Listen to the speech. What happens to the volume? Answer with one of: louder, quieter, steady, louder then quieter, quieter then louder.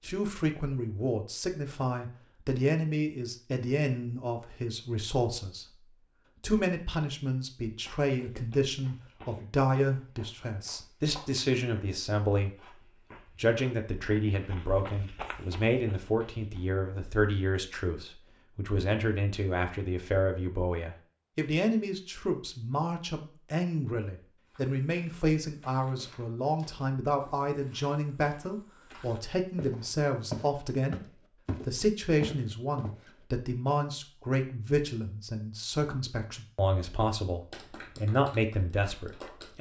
steady.